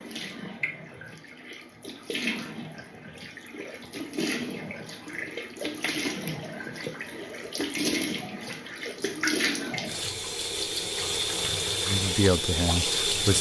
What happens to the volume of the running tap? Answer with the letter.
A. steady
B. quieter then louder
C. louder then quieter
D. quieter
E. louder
E.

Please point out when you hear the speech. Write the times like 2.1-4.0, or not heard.
11.8-13.3.